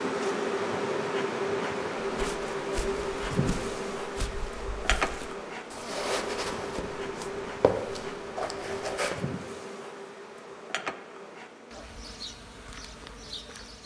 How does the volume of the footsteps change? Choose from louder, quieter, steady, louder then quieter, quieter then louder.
louder.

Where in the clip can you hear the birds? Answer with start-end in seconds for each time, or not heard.
not heard.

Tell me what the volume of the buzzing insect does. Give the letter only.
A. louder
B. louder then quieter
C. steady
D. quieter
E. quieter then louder
D.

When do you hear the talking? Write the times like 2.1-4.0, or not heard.
not heard.